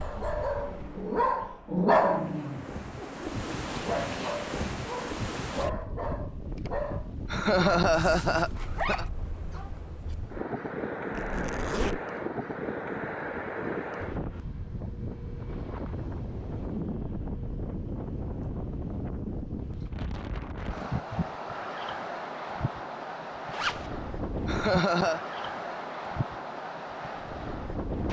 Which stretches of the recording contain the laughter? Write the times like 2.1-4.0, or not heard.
7.3-9.1, 24.4-25.2.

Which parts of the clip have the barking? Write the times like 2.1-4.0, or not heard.
0.0-9.7.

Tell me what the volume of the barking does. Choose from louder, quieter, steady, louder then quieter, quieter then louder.
quieter.